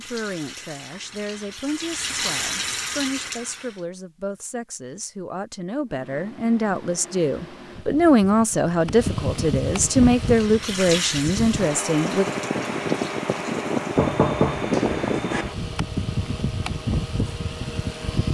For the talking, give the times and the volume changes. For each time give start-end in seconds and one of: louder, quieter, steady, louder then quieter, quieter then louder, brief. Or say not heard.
0.0-12.2 louder.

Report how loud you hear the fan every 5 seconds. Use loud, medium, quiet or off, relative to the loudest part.
off, medium, loud, loud.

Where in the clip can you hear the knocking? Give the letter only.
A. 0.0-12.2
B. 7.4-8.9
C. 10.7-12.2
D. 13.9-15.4
D.